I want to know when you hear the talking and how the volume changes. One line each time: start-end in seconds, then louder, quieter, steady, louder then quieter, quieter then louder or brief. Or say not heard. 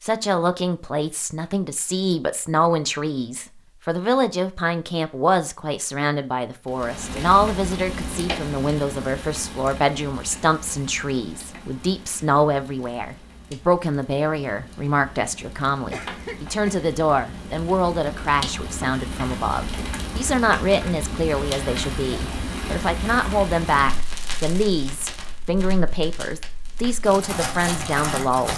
0.0-28.5 steady.